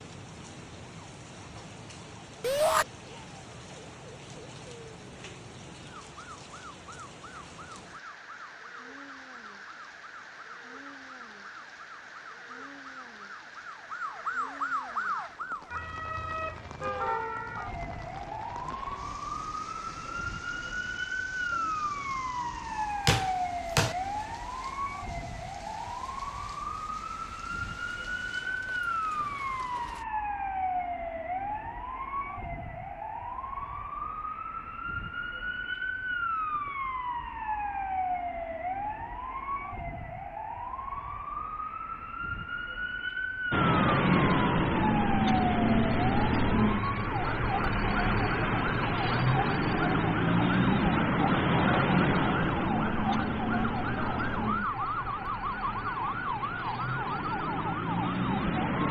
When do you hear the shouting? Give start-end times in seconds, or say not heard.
2.4-2.9.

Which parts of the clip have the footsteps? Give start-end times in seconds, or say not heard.
not heard.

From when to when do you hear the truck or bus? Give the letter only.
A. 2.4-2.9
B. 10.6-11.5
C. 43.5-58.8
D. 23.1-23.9
C.